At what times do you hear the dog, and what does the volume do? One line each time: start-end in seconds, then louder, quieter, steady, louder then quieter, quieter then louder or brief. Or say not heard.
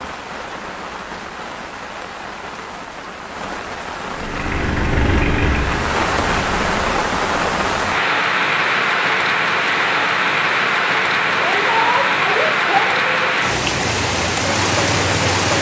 not heard.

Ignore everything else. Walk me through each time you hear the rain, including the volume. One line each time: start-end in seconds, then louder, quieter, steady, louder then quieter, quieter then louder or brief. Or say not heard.
0.0-15.5 louder.